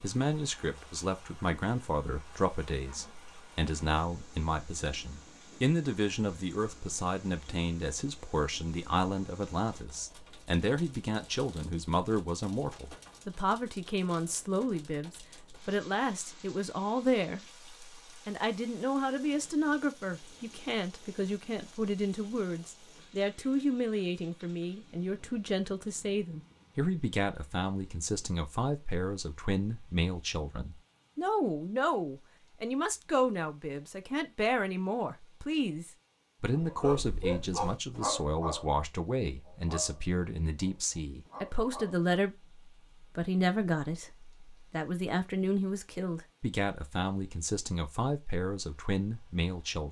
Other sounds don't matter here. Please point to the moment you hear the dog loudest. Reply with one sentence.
The volume of the dog peaks at 37 seconds.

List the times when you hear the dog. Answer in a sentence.
The dog can be heard from 36.5 to 42.0 s.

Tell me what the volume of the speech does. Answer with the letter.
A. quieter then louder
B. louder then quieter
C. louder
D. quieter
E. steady
E.